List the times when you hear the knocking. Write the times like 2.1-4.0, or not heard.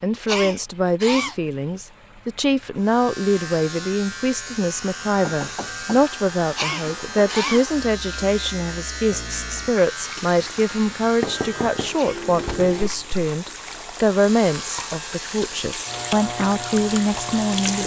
5.0-6.1, 11.2-12.9.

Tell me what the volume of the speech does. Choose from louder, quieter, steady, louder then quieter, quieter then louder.
steady.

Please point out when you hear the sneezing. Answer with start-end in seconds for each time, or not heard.
0.2-1.4, 6.5-7.7, 11.9-12.9.